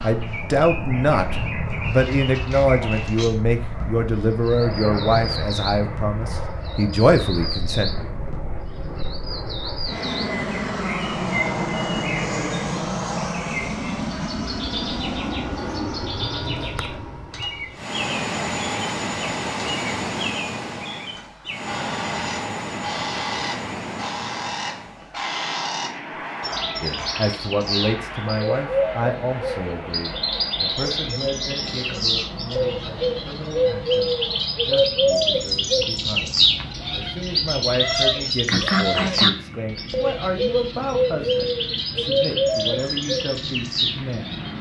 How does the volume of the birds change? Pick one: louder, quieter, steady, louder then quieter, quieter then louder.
louder.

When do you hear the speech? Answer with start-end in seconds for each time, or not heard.
0.0-7.9, 26.8-44.4.